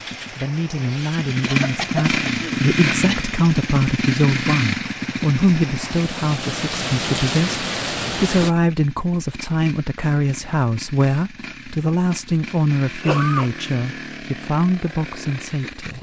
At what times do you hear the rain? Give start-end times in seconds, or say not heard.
0.0-8.5.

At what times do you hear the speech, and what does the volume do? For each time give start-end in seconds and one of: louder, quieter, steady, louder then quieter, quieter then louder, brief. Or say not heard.
0.3-15.9 steady.